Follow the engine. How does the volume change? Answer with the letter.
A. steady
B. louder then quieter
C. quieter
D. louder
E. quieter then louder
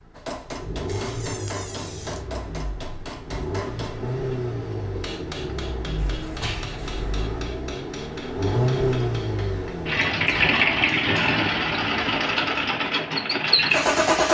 D.